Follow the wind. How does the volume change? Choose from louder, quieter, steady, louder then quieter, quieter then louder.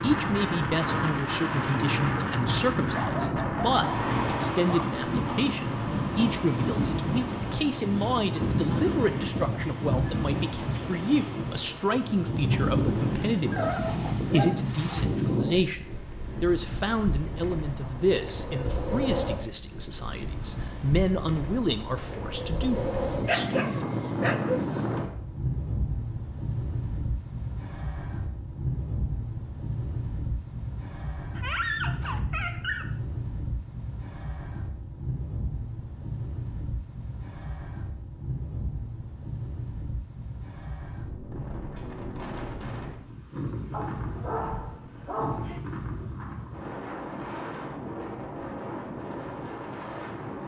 quieter.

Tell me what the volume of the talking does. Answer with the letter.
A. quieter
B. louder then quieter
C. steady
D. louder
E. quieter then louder
C.